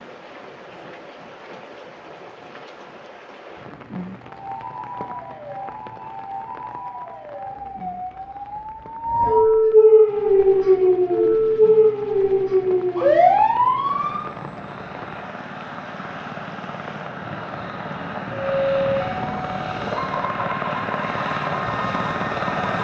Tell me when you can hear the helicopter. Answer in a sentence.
You can hear the helicopter from 10.1 to 22.8 s.